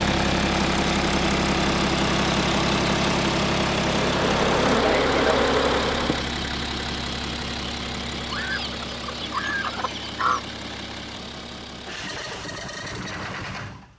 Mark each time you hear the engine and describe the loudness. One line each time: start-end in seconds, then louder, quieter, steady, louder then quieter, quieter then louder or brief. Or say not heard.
0.0-13.9 quieter.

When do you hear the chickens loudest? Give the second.
10 s.